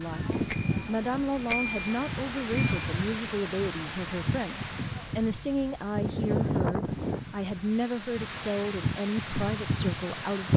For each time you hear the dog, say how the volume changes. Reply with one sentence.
The dog can't be heard in this clip.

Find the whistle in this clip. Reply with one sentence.
The whistle can't be heard in this clip.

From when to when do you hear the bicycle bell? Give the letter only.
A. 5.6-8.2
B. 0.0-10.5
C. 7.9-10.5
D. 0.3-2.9
D.